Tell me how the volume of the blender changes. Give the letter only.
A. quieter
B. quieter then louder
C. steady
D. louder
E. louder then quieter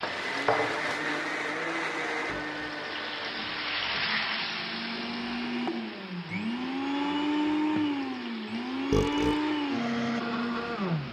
B.